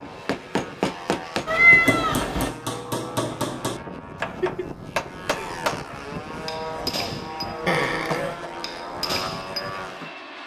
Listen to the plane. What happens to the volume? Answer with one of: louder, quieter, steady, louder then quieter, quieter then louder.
louder.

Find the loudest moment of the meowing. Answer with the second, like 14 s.
2 s.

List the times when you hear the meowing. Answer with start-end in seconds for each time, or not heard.
1.4-2.5, 7.7-8.4.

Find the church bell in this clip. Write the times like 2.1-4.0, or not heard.
not heard.